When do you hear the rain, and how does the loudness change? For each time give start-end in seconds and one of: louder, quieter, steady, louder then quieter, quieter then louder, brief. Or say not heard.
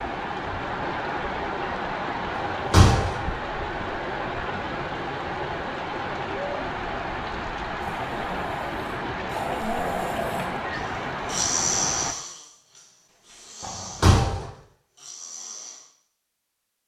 0.0-12.2 steady.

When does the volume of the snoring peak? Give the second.
12 s.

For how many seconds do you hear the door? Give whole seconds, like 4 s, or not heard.
2 s.